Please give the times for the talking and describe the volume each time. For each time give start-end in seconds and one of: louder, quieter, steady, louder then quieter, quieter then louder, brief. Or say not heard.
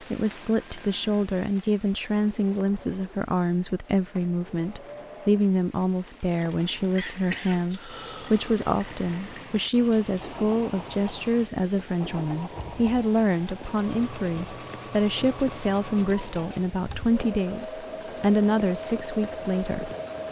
0.1-20.2 steady.